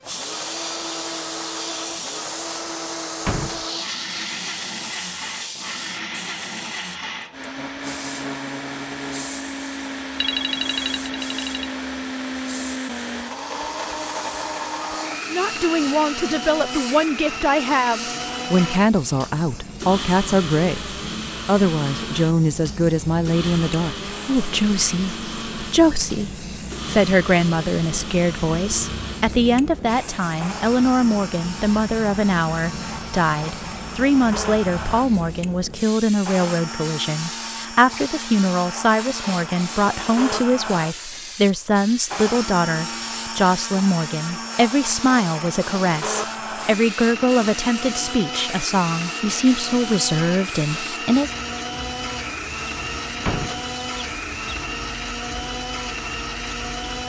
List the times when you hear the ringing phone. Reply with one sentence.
The ringing phone can be heard from 10.2 to 11.8 s.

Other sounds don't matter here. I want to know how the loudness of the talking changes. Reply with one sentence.
The loudness of the talking stays about the same.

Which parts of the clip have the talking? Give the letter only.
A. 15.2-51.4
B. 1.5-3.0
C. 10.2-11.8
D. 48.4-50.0
A.